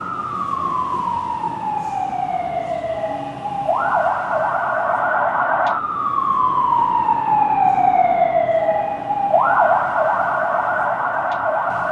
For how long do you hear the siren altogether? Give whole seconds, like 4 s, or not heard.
12 s.